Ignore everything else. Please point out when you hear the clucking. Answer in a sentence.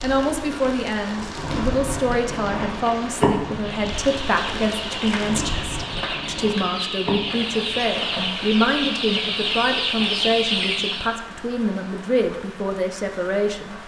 The clucking can be heard from 3.5 to 11.2 s.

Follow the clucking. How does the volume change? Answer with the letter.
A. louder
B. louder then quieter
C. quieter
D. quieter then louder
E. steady
A.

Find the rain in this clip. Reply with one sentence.
You can hear the rain from 0.0 to 13.8 s.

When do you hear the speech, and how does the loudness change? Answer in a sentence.
The speech can be heard from 0.0 to 13.8 s, at a steady volume.